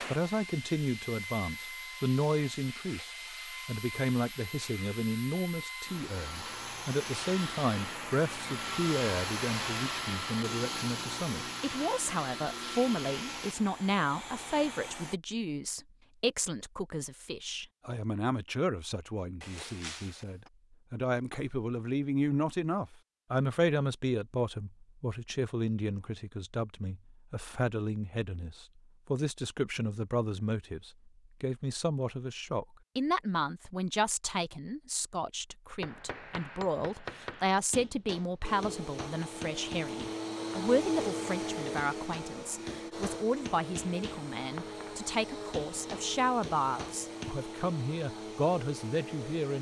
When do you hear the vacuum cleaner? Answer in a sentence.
You can hear the vacuum cleaner from 0.0 to 15.2 s and from 38.4 to 49.5 s.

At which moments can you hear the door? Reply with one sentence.
The door can be heard from 19.4 to 20.5 s.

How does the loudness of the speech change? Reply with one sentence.
The loudness of the speech stays about the same.